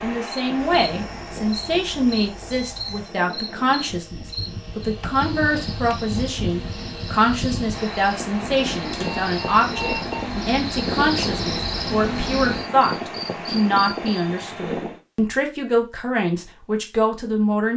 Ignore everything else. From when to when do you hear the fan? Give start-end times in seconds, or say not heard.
0.0-15.0.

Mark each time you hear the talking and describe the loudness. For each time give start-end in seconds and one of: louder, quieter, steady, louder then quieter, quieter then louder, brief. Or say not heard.
0.0-17.7 steady.